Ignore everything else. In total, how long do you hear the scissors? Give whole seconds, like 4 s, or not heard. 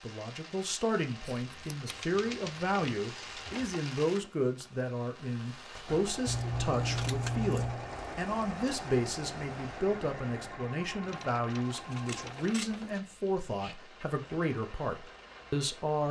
3 s.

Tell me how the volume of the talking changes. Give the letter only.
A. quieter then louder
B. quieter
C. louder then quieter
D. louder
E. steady
E.